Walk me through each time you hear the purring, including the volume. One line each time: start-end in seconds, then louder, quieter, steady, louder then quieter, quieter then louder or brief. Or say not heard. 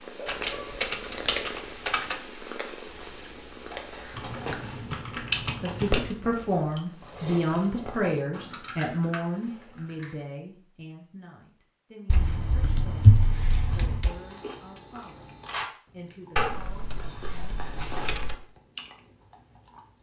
0.0-7.7 quieter then louder.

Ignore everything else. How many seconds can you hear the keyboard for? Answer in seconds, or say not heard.
10 s.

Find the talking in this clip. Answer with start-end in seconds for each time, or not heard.
5.6-17.6.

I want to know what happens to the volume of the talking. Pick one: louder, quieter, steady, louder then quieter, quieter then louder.
quieter.